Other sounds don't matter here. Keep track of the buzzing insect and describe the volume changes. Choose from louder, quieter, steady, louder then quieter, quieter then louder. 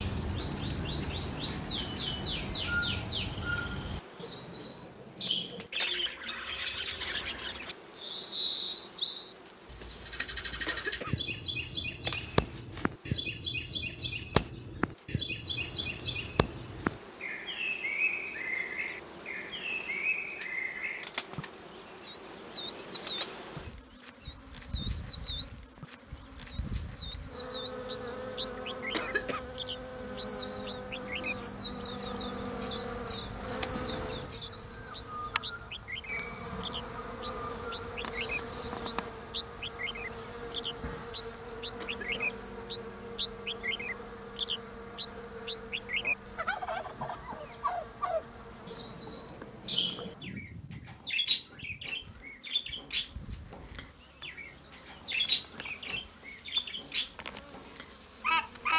louder then quieter.